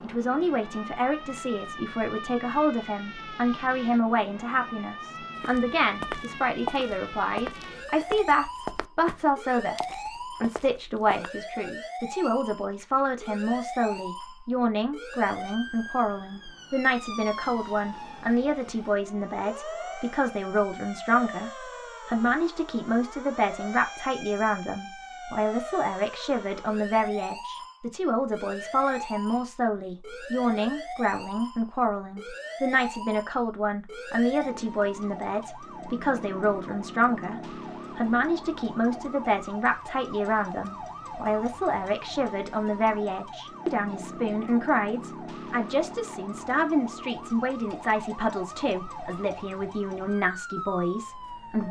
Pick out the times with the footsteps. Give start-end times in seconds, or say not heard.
5.3-11.3.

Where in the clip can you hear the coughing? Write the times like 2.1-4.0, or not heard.
not heard.